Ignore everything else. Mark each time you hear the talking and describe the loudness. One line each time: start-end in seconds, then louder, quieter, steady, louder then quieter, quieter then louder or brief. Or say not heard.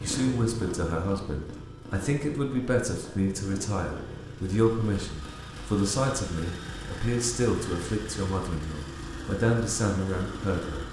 0.0-10.8 steady.